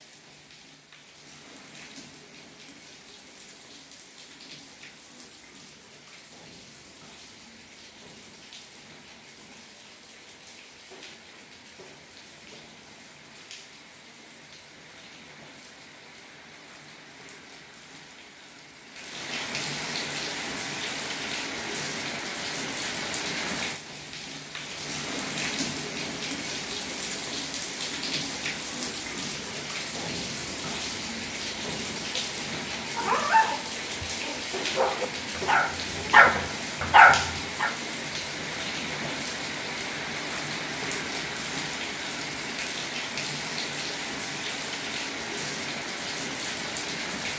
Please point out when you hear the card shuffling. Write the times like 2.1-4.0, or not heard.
not heard.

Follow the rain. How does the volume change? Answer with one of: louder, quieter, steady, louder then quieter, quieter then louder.
louder.